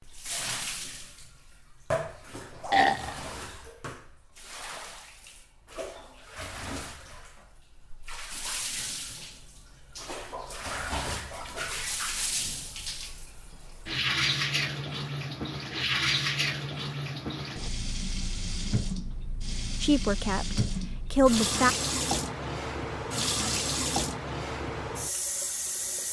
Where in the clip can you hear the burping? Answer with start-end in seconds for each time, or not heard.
2.4-3.2.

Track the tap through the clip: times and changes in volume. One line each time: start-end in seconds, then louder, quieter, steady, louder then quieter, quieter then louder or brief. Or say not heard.
0.0-26.0 louder.